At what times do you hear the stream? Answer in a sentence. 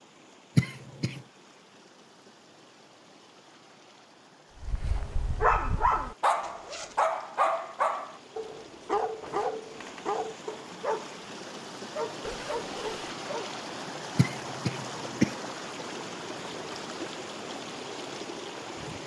The stream can be heard from 0.0 to 19.0 s.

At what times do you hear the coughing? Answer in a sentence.
You can hear the coughing from 0.6 to 1.2 s and from 14.2 to 15.3 s.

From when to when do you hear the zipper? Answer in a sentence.
The zipper can be heard from 6.4 to 7.0 s and from 12.2 to 13.0 s.